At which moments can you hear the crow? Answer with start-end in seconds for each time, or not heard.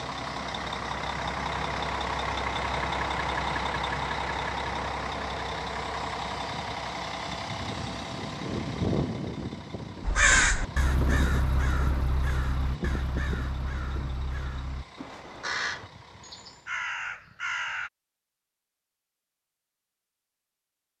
10.0-17.9.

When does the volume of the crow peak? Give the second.
10 s.